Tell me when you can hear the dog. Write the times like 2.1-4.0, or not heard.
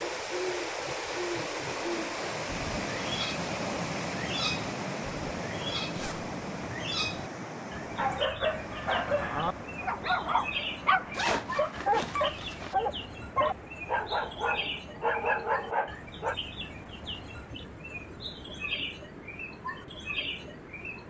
7.9-16.4.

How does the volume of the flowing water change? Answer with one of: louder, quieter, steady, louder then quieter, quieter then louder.
quieter.